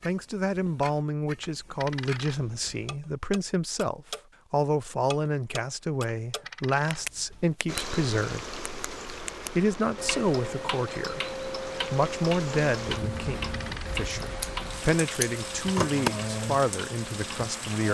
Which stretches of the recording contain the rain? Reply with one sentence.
The rain can be heard from 7.7 to 17.9 s.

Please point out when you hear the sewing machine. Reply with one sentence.
The sewing machine can't be heard in this clip.